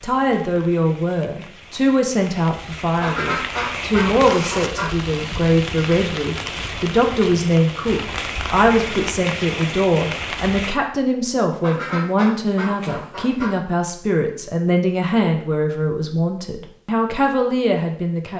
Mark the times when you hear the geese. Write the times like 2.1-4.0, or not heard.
3.0-4.9, 11.6-13.5.